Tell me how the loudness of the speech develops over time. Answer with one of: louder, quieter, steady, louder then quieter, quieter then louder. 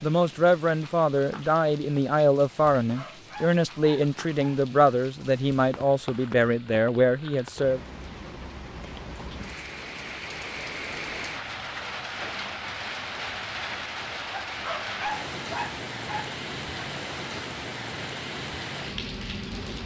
steady.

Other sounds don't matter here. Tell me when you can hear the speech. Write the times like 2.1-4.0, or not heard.
0.0-7.8.